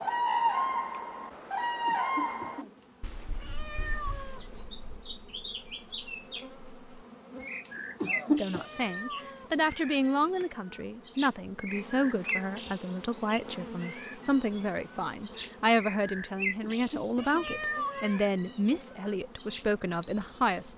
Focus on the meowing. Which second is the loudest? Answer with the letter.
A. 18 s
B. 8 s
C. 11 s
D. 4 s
A.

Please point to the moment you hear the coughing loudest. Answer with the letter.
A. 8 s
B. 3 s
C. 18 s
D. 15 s
A.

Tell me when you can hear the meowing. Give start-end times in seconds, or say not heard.
3.4-4.5, 8.4-9.6, 17.1-18.3.